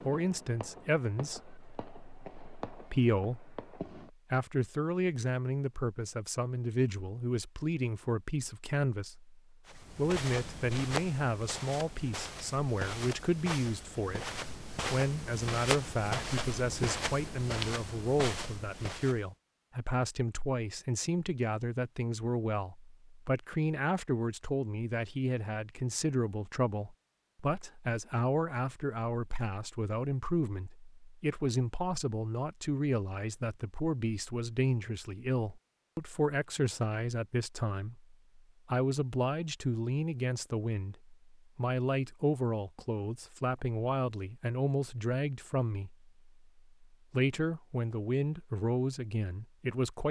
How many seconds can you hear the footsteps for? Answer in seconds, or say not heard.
10 s.